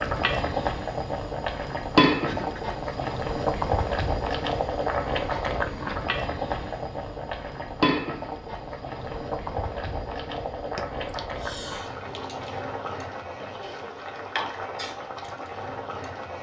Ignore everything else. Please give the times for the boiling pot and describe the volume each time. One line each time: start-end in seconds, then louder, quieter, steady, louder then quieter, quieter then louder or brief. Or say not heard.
0.0-16.3 quieter.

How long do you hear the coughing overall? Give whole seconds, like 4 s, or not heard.
2 s.